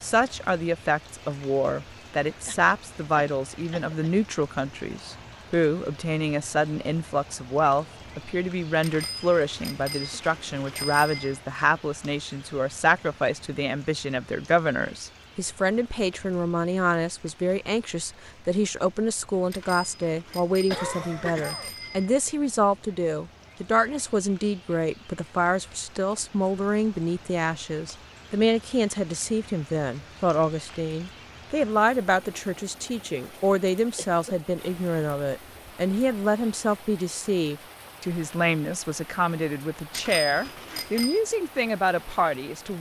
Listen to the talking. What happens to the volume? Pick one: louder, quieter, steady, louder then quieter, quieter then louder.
steady.